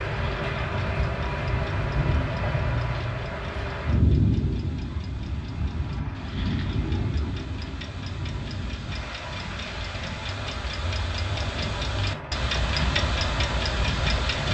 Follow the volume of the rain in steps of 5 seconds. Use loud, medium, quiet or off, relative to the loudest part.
loud, medium, medium.